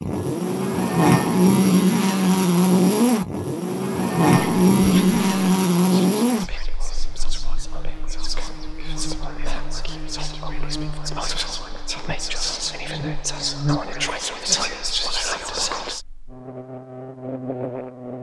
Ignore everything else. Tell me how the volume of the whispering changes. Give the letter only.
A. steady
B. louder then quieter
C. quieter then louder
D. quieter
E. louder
E.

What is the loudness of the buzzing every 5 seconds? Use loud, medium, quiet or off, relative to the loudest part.
loud, medium, quiet, quiet.